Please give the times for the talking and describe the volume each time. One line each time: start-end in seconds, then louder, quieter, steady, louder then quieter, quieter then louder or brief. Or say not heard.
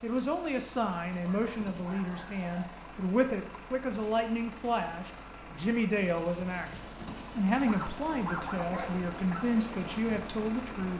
0.0-10.9 steady.